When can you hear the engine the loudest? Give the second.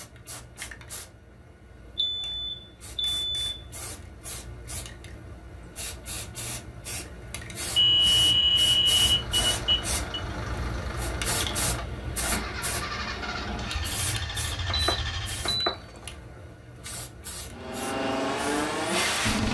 19 s.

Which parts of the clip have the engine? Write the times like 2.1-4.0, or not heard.
9.0-15.6, 17.5-19.4.